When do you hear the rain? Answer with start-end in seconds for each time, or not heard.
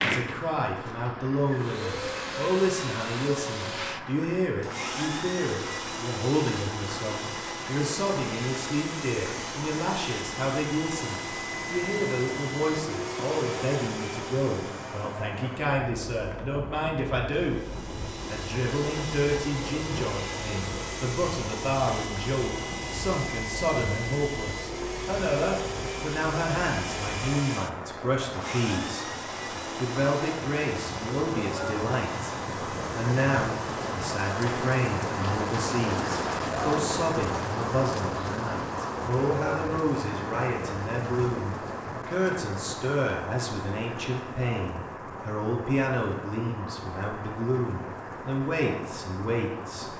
0.1-49.9.